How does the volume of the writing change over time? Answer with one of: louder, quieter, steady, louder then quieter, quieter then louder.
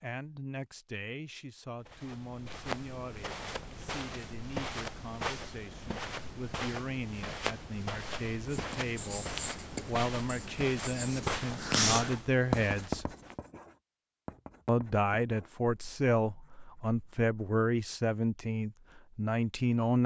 louder then quieter.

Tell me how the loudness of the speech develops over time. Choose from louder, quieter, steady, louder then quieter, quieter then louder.
louder.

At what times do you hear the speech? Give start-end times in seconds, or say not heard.
0.0-13.1, 14.7-20.0.